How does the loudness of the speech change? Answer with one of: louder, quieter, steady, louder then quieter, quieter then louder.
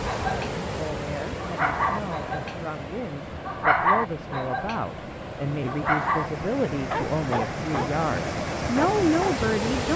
louder.